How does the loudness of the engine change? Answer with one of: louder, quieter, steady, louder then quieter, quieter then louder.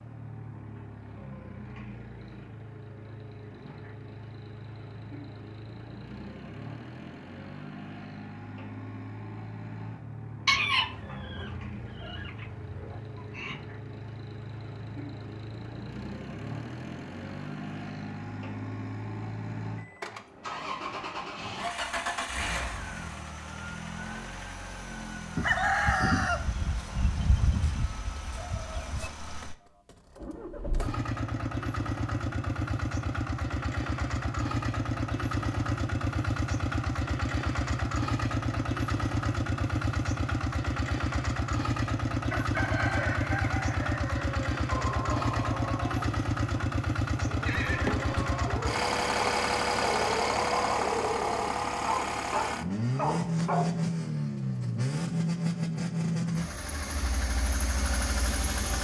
louder.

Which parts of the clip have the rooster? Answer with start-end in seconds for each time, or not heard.
10.4-13.6, 25.4-29.1, 42.3-44.5.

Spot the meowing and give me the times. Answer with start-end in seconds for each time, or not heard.
not heard.